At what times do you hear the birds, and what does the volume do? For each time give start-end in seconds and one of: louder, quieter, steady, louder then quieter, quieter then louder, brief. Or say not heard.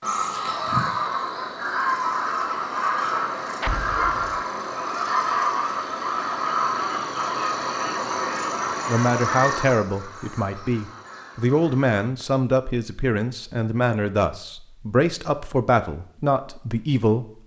0.0-11.9 quieter.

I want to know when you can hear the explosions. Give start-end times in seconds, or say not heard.
3.6-4.4.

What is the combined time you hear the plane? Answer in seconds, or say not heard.
not heard.